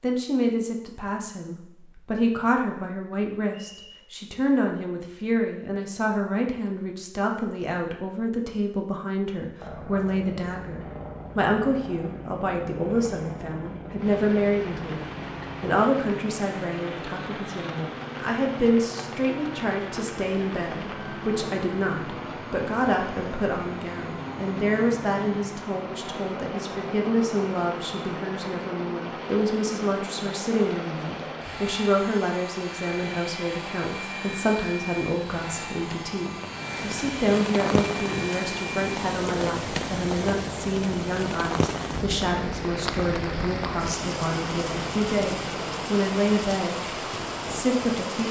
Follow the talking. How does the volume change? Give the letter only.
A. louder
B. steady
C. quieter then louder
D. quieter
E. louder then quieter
B.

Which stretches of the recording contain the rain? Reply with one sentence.
The rain can be heard from 13.9 to 48.2 s.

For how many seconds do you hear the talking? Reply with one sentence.
The talking can be heard for 48 seconds in total.